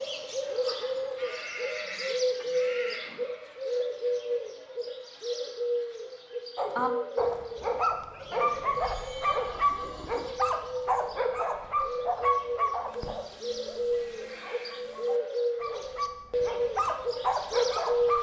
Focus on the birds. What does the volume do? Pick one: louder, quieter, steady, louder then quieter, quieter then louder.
quieter then louder.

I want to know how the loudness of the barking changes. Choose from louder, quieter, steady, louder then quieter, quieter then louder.
quieter then louder.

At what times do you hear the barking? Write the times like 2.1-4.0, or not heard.
6.5-18.1.